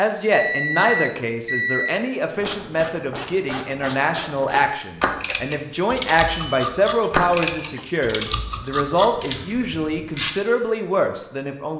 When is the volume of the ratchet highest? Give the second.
7 s.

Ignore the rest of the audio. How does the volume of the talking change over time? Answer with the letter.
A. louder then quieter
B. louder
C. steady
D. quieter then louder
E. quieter
C.